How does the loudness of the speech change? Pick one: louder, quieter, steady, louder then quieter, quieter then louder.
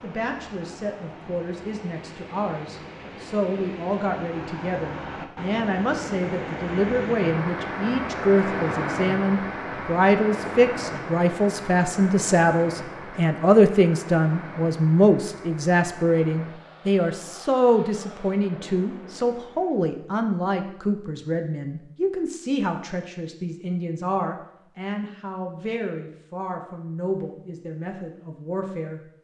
louder then quieter.